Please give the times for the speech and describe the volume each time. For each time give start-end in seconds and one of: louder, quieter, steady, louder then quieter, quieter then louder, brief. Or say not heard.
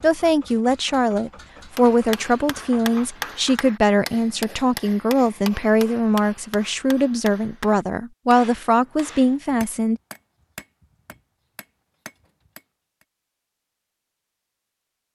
0.0-10.0 steady.